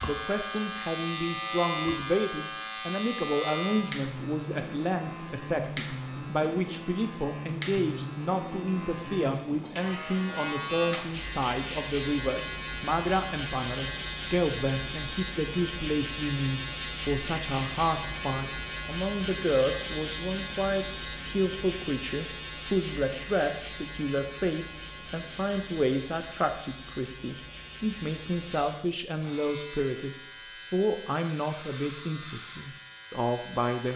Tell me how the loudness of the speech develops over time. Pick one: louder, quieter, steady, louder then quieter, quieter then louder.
steady.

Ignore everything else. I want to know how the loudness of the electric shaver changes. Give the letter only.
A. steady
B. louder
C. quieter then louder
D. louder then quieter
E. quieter
E.